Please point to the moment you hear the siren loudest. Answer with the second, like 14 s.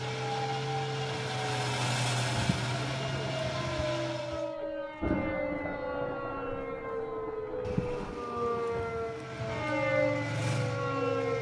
10 s.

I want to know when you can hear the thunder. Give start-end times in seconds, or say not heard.
4.5-8.2.